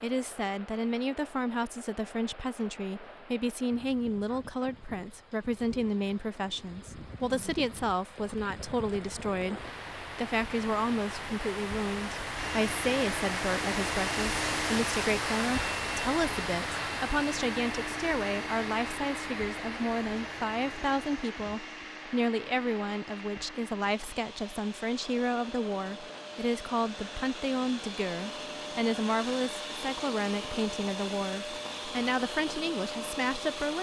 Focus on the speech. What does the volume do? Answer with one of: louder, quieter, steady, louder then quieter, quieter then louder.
steady.